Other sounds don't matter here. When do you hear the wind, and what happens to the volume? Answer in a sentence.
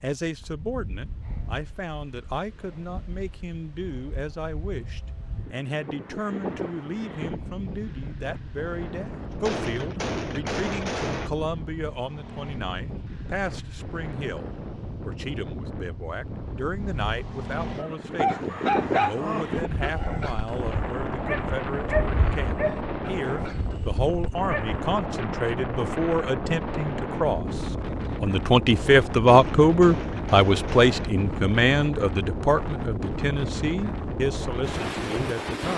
You can hear the wind from 0.1 to 35.7 s, getting louder.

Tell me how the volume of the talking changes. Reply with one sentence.
The loudness of the talking goes up.